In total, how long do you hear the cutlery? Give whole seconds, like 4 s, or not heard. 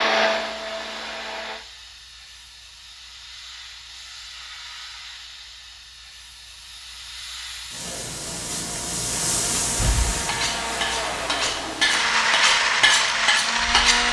4 s.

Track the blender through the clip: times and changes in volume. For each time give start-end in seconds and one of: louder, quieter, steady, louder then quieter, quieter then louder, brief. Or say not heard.
0.0-1.6 brief
9.1-14.0 louder.